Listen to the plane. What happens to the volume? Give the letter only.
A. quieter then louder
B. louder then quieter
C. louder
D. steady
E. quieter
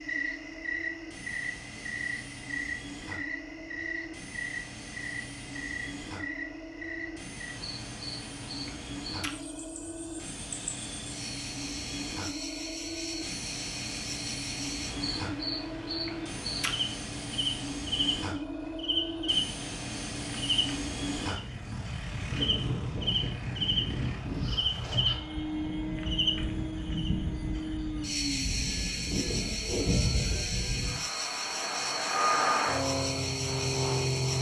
C.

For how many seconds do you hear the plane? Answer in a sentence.
You can hear the plane for 34 seconds altogether.